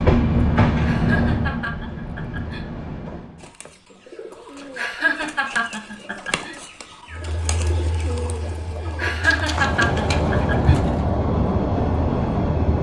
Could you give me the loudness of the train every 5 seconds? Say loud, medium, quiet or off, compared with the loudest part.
loud, medium, loud.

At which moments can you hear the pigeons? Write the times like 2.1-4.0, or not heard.
3.4-11.1.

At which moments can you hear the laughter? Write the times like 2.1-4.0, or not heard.
0.8-2.6, 4.8-6.5, 8.9-10.8.